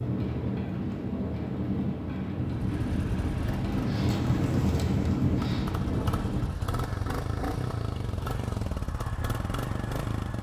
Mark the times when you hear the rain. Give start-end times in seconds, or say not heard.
0.0-6.5.